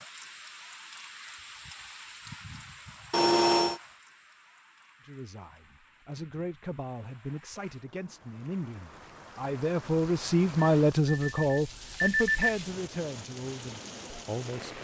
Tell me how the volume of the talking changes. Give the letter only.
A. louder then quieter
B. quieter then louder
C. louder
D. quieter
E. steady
A.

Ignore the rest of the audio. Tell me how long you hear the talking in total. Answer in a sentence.
You can hear the talking for 10 seconds altogether.